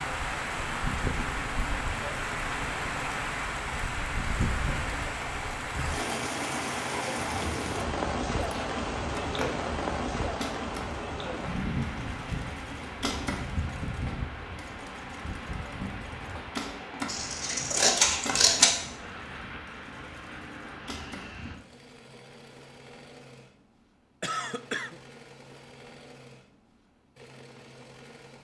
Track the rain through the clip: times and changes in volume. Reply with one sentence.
The rain can be heard from 0.0 to 21.6 s, getting quieter.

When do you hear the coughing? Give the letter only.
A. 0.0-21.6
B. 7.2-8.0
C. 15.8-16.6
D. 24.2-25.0
D.